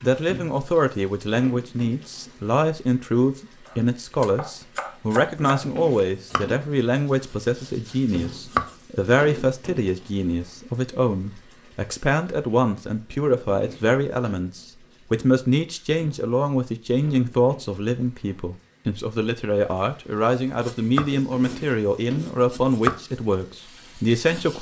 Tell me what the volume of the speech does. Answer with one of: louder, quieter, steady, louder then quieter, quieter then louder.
steady.